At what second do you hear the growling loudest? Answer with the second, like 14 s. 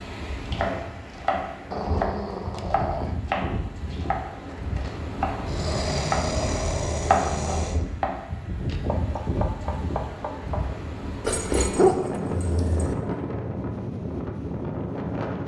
12 s.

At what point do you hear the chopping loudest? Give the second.
7 s.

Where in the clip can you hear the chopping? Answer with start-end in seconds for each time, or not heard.
0.5-10.7.